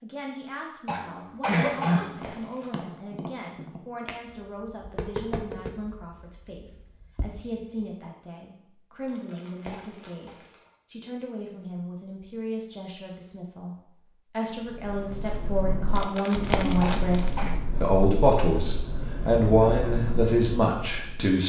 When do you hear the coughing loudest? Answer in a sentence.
The volume of the coughing peaks at 2 seconds.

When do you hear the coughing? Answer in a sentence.
The coughing can be heard from 0.8 to 2.1 s, from 9.7 to 10.3 s and from 16.8 to 17.6 s.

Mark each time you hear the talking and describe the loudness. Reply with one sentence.
You can hear the talking from 0.0 to 21.4 s, getting louder.